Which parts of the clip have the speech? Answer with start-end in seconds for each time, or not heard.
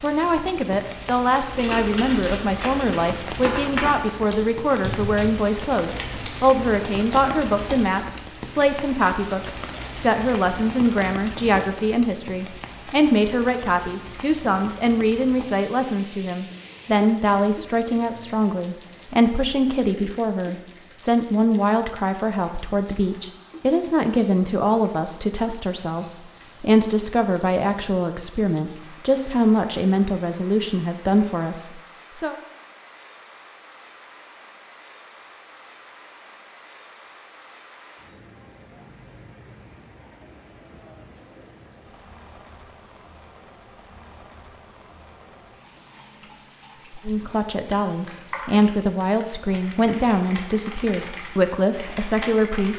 0.0-32.4, 47.0-52.7.